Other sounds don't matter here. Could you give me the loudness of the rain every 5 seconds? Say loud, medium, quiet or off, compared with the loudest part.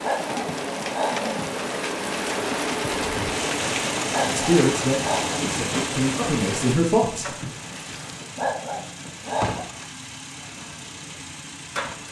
loud, medium, medium.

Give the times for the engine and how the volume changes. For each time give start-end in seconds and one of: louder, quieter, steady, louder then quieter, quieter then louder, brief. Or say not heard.
3.0-12.0 quieter.